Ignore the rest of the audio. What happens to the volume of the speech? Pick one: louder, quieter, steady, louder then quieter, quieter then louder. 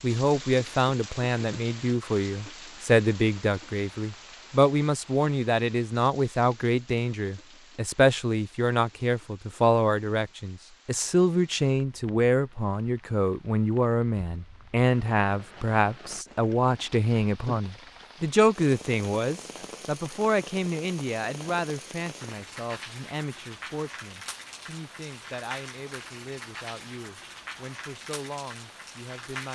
quieter.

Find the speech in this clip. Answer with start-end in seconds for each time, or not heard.
0.0-29.4.